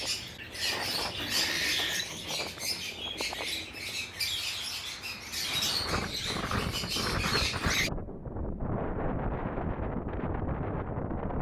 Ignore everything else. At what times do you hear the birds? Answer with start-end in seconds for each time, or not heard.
0.0-7.9.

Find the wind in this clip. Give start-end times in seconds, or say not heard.
0.0-11.3.